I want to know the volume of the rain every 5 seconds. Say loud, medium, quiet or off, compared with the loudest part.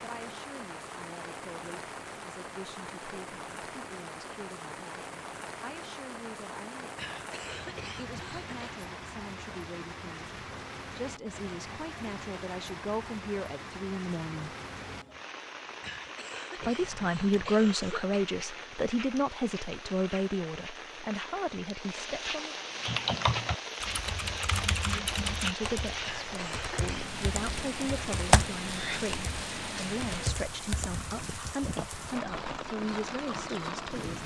medium, medium, medium, medium, loud, loud, loud.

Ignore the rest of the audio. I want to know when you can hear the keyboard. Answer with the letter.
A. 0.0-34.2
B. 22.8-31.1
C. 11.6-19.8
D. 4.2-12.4
B.